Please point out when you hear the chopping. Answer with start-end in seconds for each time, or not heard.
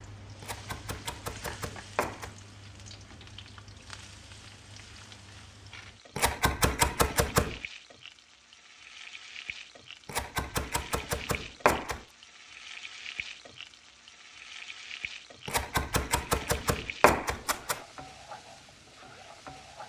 0.4-2.4, 6.2-7.6, 10.1-12.0, 15.4-17.8.